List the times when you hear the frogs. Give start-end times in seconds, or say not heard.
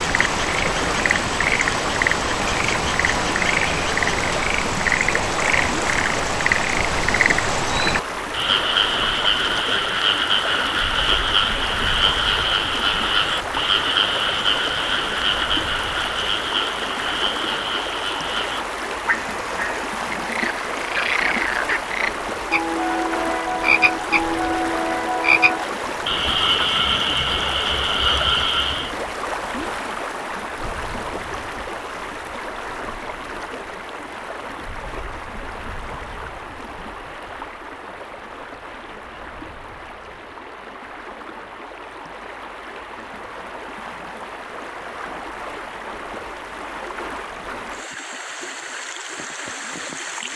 0.0-28.9.